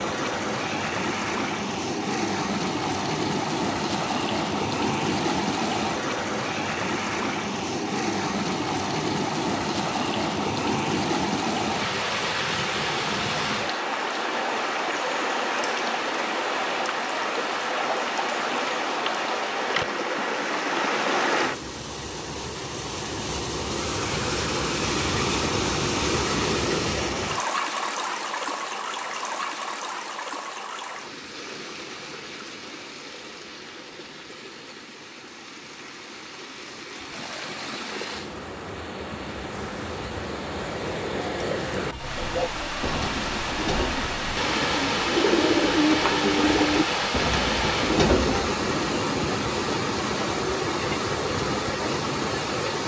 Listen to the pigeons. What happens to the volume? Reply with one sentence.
The loudness of the pigeons goes up.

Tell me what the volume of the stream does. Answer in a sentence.
The loudness of the stream goes down, then up.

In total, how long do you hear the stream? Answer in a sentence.
The stream can be heard for 53 seconds in total.